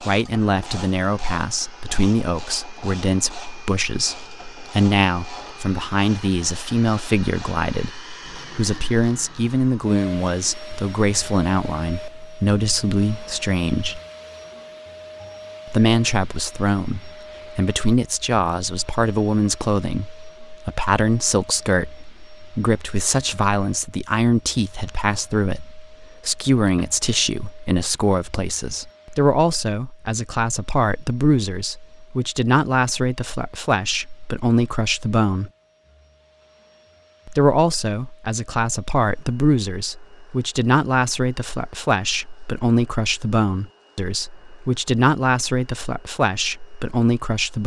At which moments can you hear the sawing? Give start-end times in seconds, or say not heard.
not heard.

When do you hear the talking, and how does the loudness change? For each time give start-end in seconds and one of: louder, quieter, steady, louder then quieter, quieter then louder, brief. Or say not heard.
0.0-14.0 steady
15.7-35.5 steady
37.2-47.6 steady.